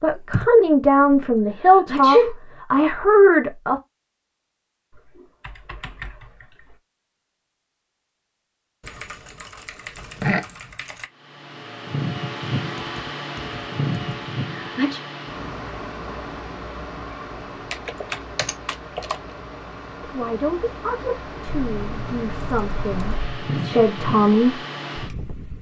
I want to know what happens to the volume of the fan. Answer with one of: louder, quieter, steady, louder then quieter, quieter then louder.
quieter then louder.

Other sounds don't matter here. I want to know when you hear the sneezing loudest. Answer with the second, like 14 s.
2 s.